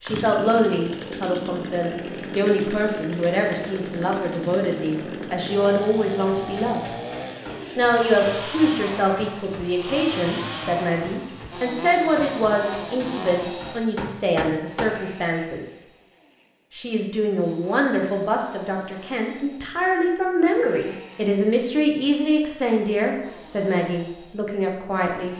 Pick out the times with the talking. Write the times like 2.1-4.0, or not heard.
0.0-6.8, 7.8-15.8, 16.7-25.3.